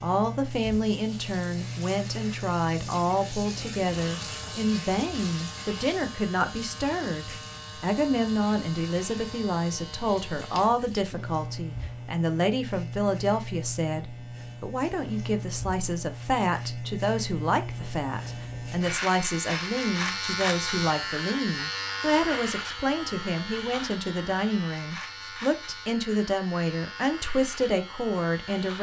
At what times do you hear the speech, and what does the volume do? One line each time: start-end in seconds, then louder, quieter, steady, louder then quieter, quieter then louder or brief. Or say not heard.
0.0-28.7 steady.